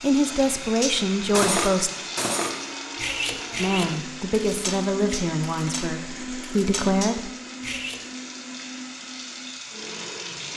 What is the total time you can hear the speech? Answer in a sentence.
The speech can be heard for 6 seconds in total.